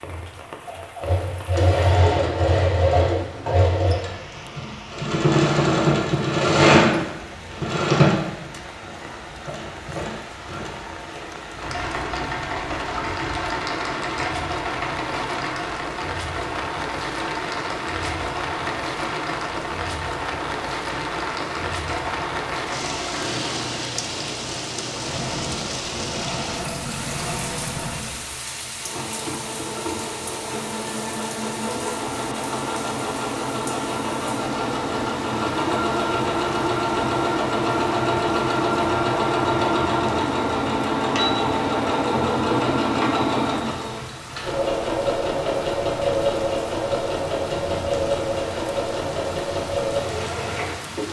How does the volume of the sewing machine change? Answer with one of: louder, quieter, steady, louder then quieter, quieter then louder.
quieter then louder.